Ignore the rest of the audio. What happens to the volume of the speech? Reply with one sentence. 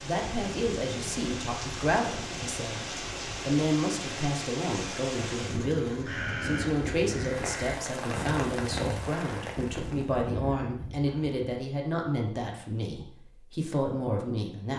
The volume of the speech stays about the same.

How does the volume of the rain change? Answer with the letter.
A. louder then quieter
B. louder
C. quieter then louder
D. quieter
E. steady
E.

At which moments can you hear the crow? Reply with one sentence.
The crow can be heard from 5.8 to 11.4 s.